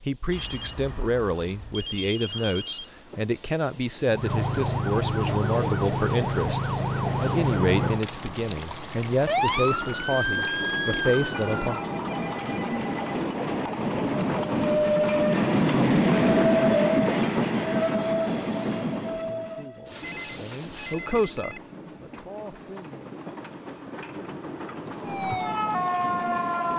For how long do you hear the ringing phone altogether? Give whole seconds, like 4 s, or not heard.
6 s.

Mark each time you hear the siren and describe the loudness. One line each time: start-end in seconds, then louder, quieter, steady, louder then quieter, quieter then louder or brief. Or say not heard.
4.0-11.8 steady
25.1-26.7 brief.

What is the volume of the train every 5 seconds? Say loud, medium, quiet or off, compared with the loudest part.
quiet, quiet, medium, loud, quiet, quiet.